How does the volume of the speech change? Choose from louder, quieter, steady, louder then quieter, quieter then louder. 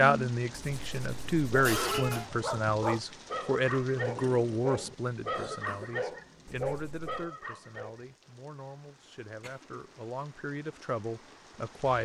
quieter then louder.